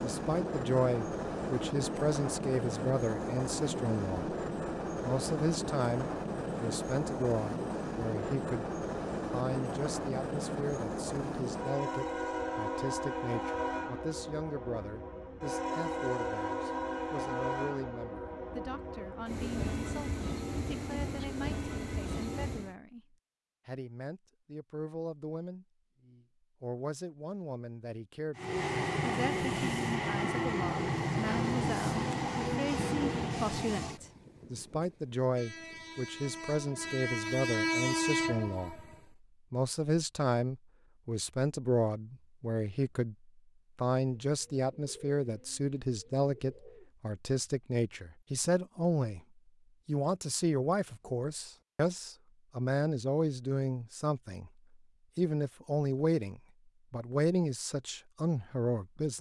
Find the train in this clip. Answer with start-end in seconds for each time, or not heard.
0.0-22.8, 28.4-39.0.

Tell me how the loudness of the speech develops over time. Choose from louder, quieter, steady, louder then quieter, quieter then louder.
quieter then louder.